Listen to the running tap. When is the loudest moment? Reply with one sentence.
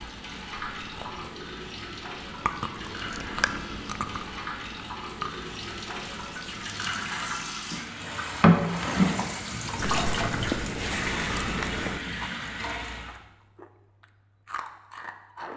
The loudest moment of the running tap is at 9 seconds.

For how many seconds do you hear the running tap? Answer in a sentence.
You can hear the running tap for 13 seconds altogether.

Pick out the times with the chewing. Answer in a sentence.
The chewing can be heard from 0.0 to 6.7 s, from 9.8 to 12.3 s and from 13.1 to 15.5 s.